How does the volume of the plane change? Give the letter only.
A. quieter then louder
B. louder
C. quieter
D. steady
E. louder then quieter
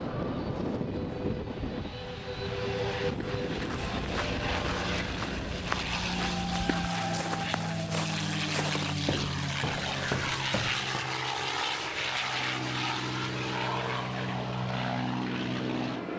D.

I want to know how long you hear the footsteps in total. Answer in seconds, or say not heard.
8 s.